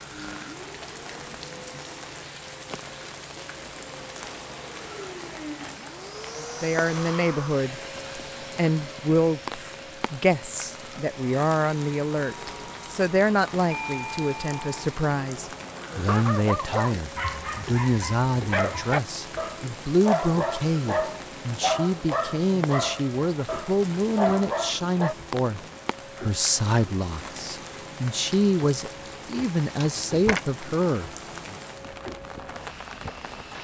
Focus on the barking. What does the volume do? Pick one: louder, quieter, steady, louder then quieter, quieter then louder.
steady.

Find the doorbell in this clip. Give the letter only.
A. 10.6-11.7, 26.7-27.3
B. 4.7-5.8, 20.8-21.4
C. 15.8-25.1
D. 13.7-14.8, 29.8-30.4
D.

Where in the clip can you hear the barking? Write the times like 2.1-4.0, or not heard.
15.8-25.1.